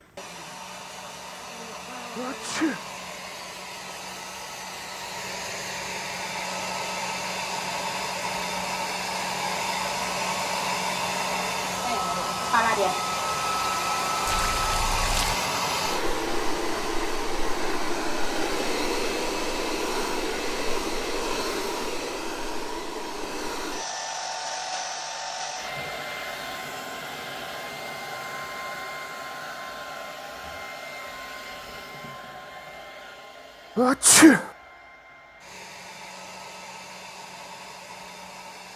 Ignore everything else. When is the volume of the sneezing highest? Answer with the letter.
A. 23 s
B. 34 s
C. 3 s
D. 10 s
B.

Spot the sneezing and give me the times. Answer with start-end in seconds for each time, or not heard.
2.1-2.9, 33.8-34.5.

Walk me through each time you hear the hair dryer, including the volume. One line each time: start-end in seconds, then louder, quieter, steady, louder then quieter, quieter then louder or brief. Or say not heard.
0.0-38.7 louder then quieter.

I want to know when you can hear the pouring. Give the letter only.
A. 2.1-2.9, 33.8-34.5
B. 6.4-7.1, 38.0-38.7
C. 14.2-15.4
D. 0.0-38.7
C.